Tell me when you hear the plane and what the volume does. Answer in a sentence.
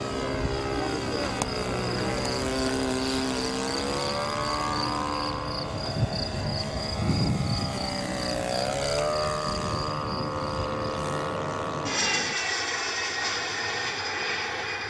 The plane can be heard from 0.0 to 14.8 s, at a steady volume.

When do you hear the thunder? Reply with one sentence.
The thunder can be heard from 10.8 to 12.3 s.